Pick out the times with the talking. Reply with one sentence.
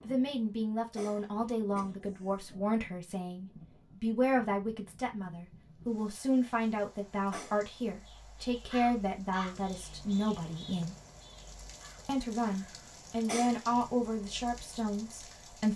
You can hear the talking from 0.1 to 10.9 s and from 12.1 to 15.7 s.